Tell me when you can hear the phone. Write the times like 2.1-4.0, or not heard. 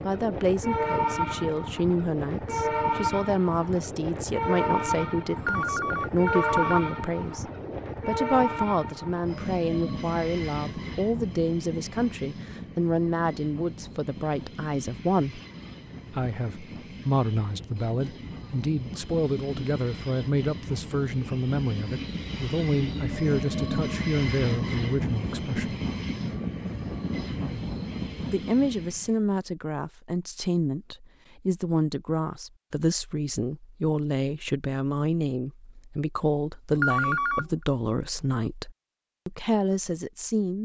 5.3-6.8, 36.7-37.5.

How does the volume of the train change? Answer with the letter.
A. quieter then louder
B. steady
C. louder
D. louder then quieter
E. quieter
A.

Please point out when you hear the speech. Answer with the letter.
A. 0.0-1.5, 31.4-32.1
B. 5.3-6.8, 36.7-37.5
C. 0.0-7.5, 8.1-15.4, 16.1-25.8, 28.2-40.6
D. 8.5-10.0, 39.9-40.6
C.